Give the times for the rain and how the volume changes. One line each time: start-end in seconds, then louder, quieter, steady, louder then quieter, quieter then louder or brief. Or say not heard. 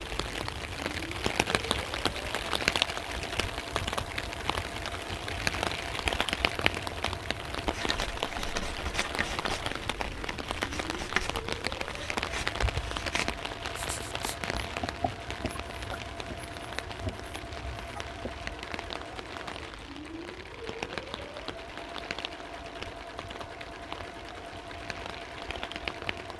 0.0-26.3 quieter.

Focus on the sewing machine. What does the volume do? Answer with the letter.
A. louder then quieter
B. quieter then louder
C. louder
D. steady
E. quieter
D.